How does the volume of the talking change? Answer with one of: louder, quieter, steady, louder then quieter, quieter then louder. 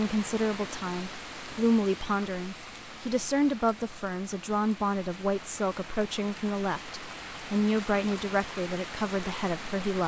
steady.